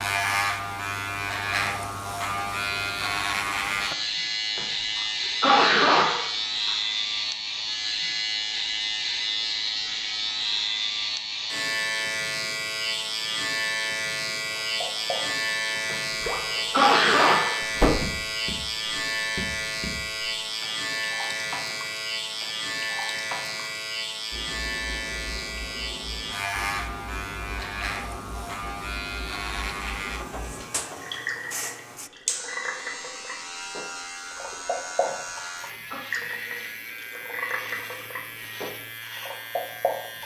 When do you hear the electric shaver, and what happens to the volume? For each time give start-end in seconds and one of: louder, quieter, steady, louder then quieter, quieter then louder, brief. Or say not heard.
0.0-40.2 quieter.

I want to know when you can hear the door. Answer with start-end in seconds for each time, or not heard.
17.8-18.2.